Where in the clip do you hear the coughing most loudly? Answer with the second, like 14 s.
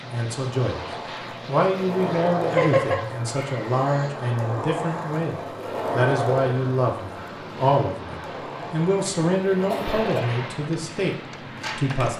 3 s.